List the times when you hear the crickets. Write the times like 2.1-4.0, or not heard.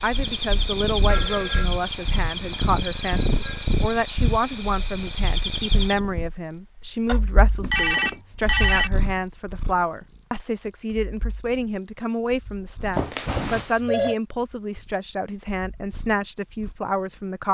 0.0-14.2.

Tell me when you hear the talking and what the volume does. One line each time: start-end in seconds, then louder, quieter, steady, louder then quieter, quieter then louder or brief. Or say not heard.
0.0-17.4 steady.